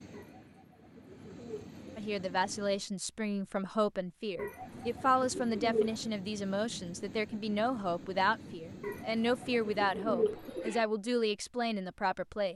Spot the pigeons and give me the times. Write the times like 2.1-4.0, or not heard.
0.1-1.9, 4.3-6.1, 8.8-10.8.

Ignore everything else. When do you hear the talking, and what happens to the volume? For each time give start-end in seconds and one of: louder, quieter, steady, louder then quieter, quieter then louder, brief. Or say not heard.
1.9-12.5 steady.